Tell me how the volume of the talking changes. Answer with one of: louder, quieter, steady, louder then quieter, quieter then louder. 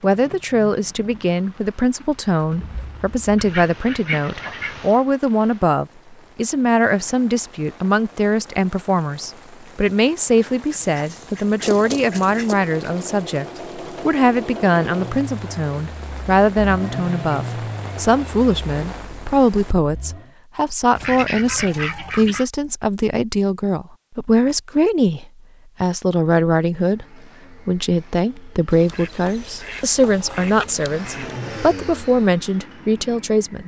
steady.